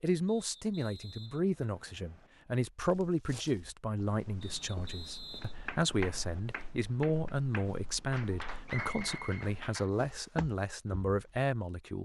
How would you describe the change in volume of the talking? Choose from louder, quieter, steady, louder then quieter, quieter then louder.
steady.